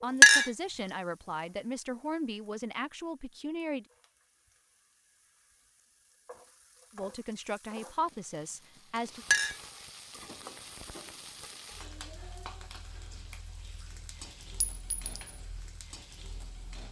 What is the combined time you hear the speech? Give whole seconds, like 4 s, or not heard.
6 s.